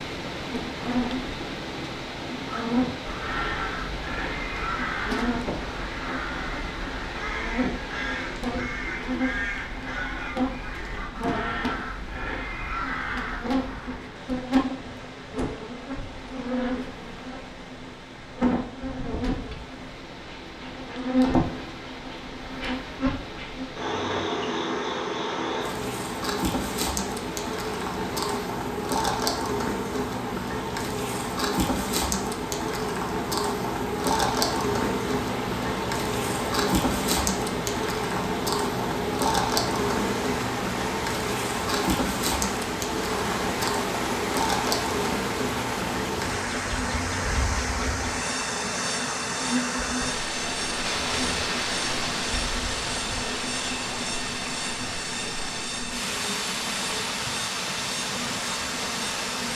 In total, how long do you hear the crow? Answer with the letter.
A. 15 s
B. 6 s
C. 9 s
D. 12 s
D.